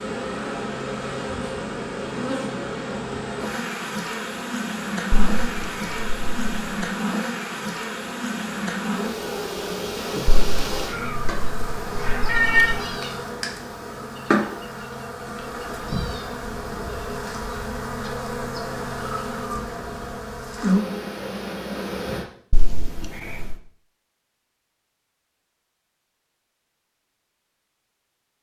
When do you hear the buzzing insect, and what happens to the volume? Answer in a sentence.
The buzzing insect can be heard from 0.0 to 22.2 s, at a steady volume.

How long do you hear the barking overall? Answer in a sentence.
The barking can't be heard in this clip.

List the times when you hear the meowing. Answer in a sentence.
The meowing can be heard from 5.1 to 6.8 s, from 10.2 to 12.8 s and from 22.5 to 23.6 s.